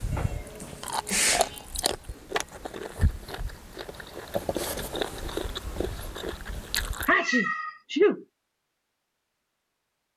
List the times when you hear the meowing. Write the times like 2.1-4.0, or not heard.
0.1-1.7, 7.2-7.8.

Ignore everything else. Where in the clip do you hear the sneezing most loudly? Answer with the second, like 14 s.
8 s.